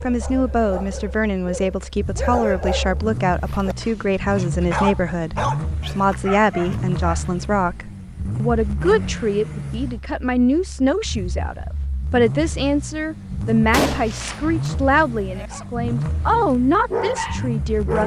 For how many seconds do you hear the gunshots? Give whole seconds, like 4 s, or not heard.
2 s.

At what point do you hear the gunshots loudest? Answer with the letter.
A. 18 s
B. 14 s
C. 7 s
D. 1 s
B.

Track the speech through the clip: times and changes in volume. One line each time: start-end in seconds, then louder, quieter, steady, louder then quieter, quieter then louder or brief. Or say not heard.
0.0-18.0 steady.